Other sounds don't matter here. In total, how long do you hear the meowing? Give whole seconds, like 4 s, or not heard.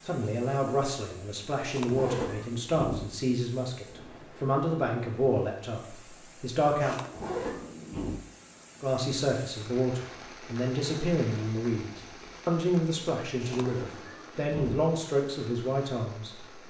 4 s.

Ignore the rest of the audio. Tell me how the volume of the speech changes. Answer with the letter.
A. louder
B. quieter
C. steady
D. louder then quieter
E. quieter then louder
C.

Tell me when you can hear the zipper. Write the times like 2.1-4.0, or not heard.
1.9-2.4, 7.1-7.7, 13.5-14.0.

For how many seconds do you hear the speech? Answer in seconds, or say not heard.
15 s.